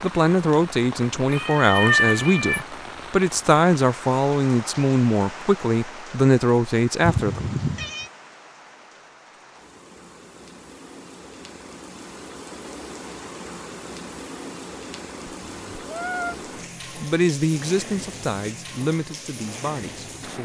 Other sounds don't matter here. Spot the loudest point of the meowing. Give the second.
2 s.